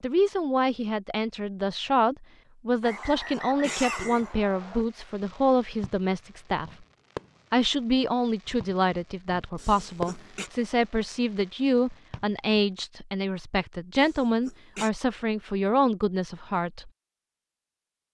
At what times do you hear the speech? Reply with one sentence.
The speech can be heard from 0.0 to 6.7 s and from 7.5 to 16.9 s.